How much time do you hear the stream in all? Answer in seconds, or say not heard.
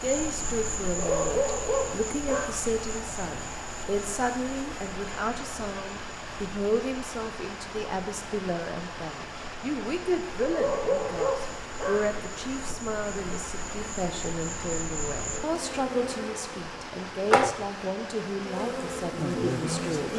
20 s.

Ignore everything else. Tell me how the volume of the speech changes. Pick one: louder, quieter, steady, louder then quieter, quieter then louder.
steady.